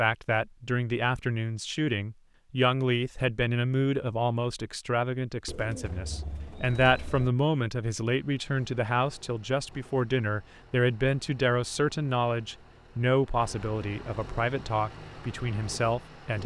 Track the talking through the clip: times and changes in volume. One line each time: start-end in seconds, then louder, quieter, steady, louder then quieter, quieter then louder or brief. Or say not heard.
0.0-16.4 steady.